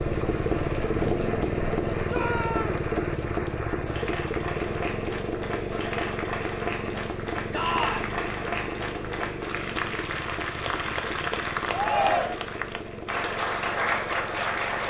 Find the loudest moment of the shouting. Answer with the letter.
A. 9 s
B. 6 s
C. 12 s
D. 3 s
C.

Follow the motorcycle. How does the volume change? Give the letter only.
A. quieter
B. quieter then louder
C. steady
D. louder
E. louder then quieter
A.